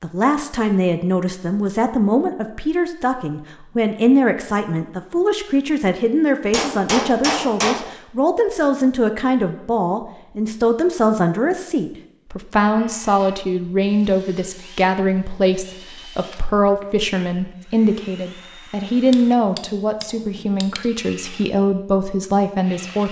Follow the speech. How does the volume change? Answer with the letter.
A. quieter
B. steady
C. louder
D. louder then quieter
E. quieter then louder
B.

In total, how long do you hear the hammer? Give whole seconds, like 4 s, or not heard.
3 s.